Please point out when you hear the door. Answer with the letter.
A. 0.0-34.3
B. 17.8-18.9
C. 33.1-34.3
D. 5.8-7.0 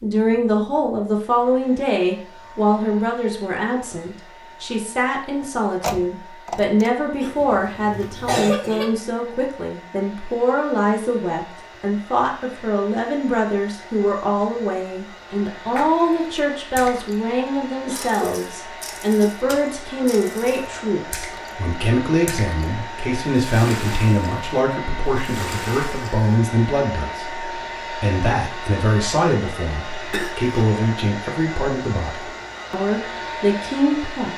D.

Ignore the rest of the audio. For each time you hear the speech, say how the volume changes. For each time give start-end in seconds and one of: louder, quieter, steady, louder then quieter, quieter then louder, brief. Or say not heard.
0.0-34.3 steady.